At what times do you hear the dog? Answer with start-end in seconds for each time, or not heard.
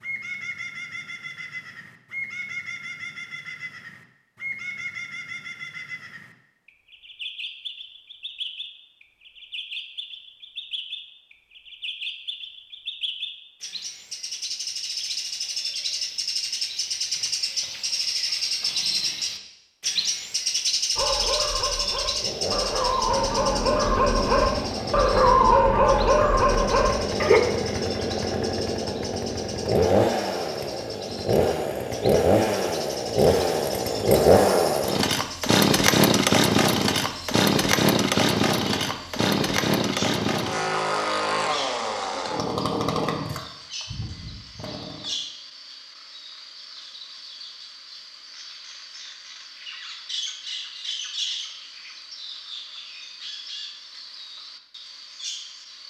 20.9-27.4.